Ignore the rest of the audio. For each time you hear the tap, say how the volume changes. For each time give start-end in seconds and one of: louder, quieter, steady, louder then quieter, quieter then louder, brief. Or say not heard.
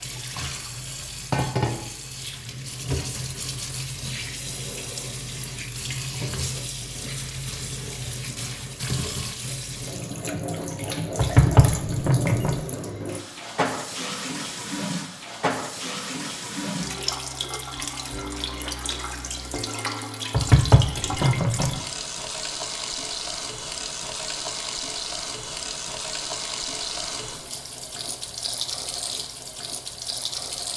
0.0-30.7 steady.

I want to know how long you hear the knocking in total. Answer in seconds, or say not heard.
3 s.